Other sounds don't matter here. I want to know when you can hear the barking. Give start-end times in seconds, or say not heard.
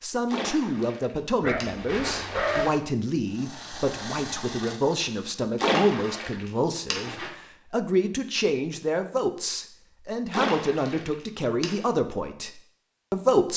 1.4-2.6.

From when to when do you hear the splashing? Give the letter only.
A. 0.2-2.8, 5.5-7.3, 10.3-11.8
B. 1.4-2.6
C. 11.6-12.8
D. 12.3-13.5
A.